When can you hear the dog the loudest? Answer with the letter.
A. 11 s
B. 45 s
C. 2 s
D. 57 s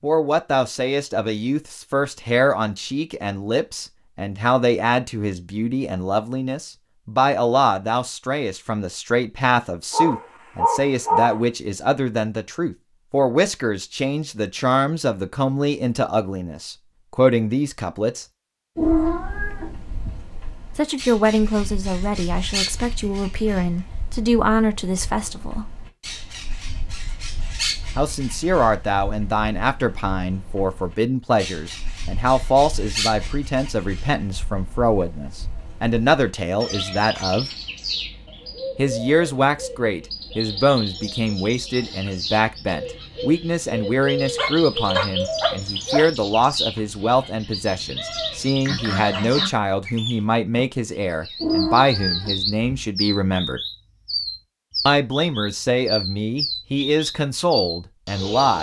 A.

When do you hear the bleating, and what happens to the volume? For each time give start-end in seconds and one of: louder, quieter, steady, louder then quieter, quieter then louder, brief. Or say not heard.
not heard.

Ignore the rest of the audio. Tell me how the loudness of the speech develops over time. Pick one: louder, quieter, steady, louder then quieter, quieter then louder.
steady.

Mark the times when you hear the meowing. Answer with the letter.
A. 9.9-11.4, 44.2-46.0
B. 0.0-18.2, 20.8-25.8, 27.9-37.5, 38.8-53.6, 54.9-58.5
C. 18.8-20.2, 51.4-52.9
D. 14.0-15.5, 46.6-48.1
C.